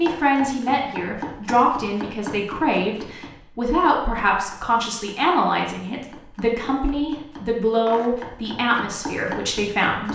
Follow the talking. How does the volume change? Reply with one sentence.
The loudness of the talking stays about the same.